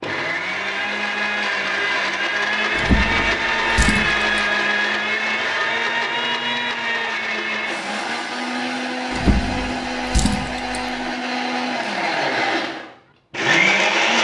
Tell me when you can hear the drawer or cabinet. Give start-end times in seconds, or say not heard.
2.8-4.4, 9.1-10.8.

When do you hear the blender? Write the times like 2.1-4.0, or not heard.
0.0-14.1.